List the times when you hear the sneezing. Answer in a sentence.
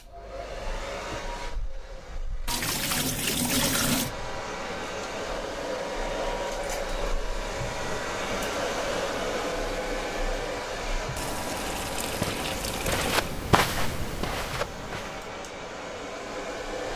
You can't hear the sneezing here.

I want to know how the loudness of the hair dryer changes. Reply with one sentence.
The loudness of the hair dryer goes up, then down.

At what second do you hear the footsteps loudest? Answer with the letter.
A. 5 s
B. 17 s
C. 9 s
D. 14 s
D.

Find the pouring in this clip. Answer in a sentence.
The pouring can be heard from 2.5 to 4.1 s and from 11.2 to 13.3 s.